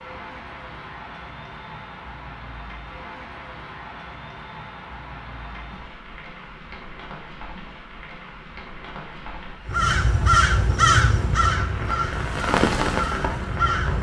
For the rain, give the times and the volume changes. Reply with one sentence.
You can hear the rain from 0.0 to 13.9 s, getting louder.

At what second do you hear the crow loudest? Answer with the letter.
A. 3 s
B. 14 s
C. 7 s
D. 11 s
D.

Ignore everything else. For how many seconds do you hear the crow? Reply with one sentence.
You can hear the crow for 4 seconds altogether.